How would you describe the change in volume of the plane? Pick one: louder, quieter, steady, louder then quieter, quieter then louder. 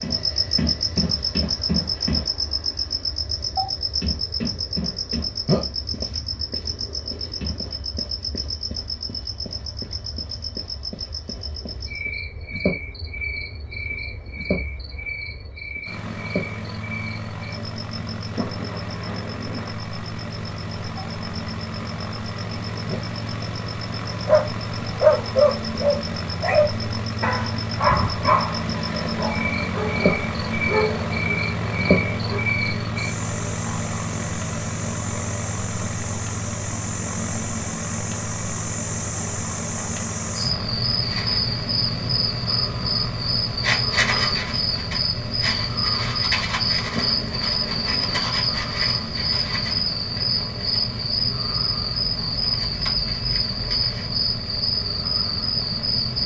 louder then quieter.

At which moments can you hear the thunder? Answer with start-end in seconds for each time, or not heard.
18.1-19.8, 46.9-48.3.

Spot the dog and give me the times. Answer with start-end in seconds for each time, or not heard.
24.2-32.4.